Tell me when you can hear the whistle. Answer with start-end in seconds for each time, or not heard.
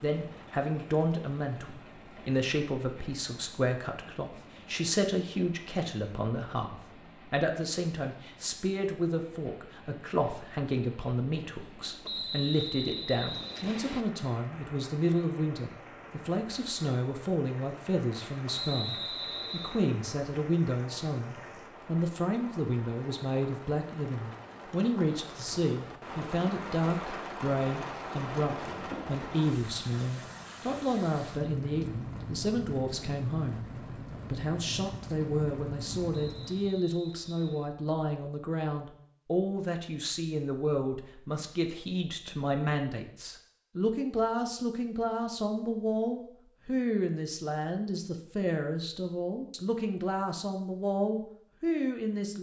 12.1-14.1, 18.4-19.8, 36.1-37.7.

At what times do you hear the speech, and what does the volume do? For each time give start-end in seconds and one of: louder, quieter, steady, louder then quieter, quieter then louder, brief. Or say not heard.
0.0-52.3 steady.